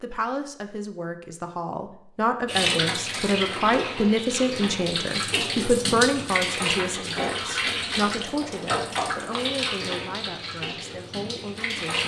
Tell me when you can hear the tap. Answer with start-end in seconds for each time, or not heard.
2.5-12.0.